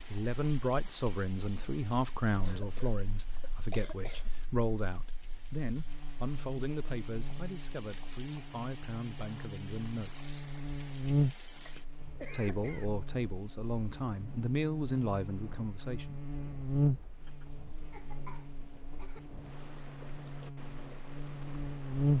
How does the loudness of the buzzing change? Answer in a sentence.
The volume of the buzzing goes up, then down.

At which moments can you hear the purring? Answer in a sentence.
The purring can't be heard in this clip.